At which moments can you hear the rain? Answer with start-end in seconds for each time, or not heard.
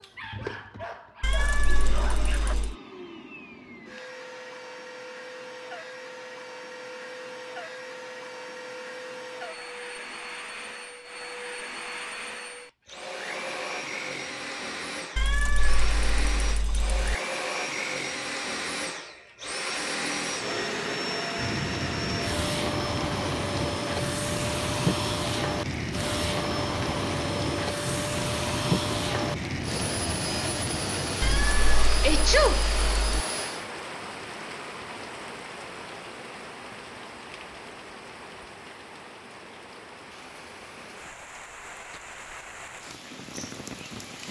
21.4-44.2.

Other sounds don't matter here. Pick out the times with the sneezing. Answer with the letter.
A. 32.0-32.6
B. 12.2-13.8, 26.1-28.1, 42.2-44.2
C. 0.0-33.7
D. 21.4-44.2
A.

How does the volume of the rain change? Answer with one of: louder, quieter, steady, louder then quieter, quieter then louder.
quieter.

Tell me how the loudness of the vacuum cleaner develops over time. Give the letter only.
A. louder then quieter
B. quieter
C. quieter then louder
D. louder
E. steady
D.